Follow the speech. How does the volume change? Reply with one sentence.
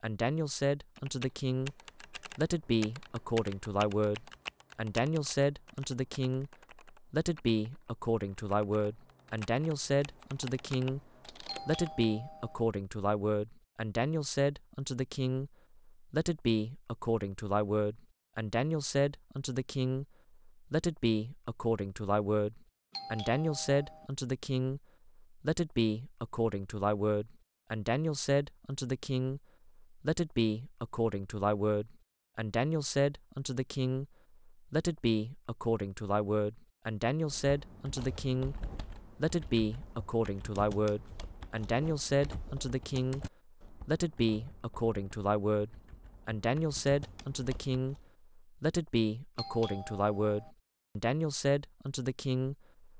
The loudness of the speech stays about the same.